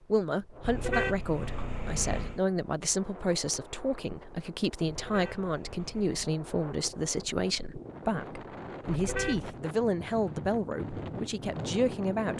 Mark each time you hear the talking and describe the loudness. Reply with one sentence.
The talking can be heard from 0.1 to 12.3 s, at a steady volume.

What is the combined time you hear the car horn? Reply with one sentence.
You can hear the car horn for 4 seconds altogether.